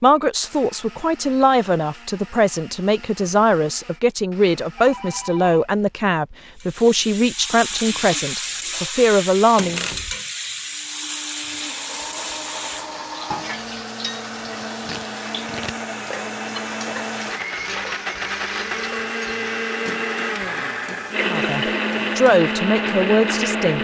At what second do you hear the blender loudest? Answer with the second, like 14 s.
22 s.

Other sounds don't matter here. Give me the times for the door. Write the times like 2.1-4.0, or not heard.
9.6-10.2.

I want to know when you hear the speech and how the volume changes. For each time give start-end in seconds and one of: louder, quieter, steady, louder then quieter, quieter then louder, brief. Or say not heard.
0.0-9.8 steady
21.2-23.7 brief.